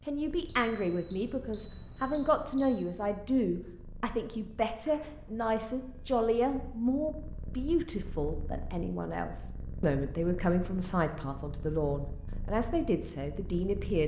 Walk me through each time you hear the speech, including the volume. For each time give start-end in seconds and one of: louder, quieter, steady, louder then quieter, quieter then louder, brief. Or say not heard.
0.0-14.0 steady.